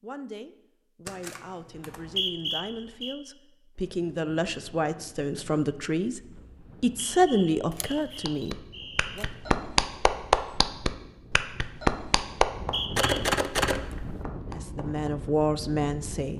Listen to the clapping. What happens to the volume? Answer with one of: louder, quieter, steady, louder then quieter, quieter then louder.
quieter.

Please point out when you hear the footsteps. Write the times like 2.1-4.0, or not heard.
not heard.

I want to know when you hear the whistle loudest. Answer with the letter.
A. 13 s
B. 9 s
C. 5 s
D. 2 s
D.